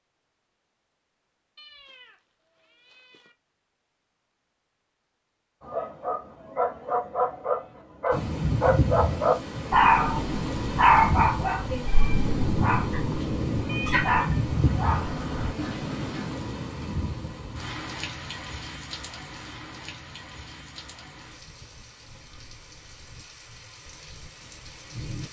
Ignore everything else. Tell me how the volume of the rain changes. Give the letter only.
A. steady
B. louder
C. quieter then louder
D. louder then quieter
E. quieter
E.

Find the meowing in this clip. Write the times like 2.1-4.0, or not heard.
1.6-3.4, 13.7-14.2.